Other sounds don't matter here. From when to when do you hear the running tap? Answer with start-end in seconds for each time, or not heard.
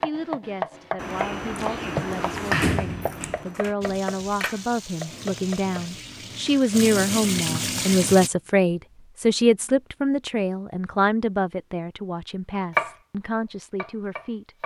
3.8-8.3.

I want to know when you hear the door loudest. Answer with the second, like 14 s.
3 s.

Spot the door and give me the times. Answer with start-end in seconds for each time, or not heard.
0.9-3.8.